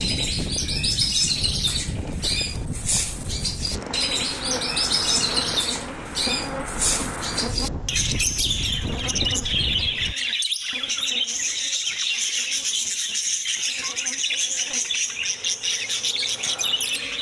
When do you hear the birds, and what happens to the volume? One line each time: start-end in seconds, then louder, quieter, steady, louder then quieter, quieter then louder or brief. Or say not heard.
0.0-17.1 steady.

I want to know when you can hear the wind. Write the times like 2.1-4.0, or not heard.
0.0-10.2.